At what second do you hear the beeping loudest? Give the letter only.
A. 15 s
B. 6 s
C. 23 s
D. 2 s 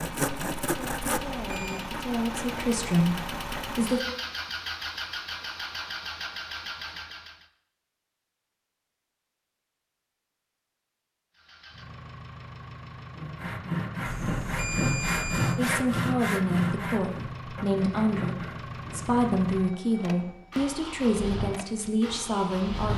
A.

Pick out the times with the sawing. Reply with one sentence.
The sawing can be heard from 0.0 to 3.8 s and from 13.2 to 19.2 s.